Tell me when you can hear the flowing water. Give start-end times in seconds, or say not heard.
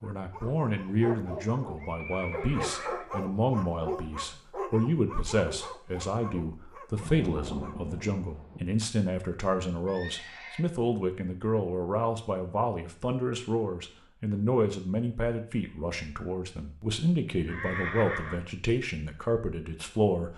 not heard.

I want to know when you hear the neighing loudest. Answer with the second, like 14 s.
18 s.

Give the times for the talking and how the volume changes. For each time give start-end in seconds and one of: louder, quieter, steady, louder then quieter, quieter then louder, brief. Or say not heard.
0.0-20.3 steady.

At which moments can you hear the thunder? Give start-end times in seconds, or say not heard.
7.0-8.6.